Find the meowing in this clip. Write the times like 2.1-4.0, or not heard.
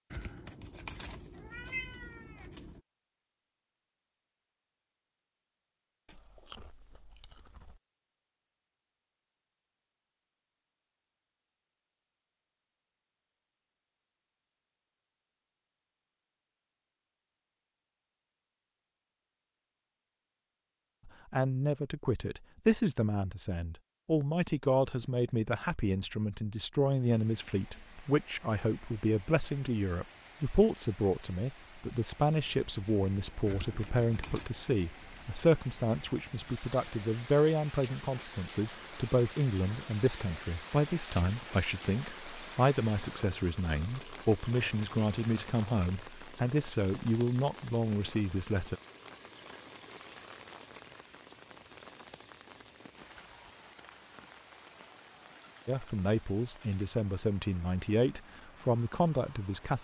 0.1-2.8, 33.5-34.5.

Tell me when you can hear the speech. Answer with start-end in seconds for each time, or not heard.
21.1-48.8, 55.6-59.7.